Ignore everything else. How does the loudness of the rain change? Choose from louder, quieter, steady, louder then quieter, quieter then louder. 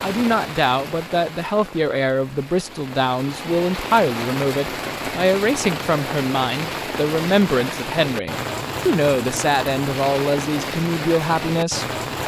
louder.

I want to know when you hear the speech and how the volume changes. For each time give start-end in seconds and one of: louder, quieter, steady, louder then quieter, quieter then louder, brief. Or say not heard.
0.0-12.2 steady.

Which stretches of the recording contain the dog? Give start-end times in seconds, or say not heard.
not heard.